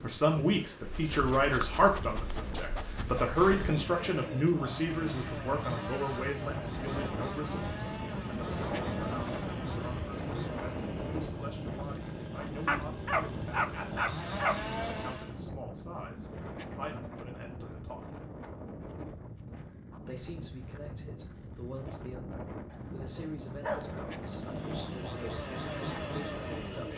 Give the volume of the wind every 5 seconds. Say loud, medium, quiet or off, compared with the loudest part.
medium, loud, loud, medium, medium, loud.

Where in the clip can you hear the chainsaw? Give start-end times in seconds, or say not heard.
3.6-15.4, 24.2-26.9.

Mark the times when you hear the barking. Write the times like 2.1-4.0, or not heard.
0.8-3.7, 12.7-14.6, 22.7-24.4.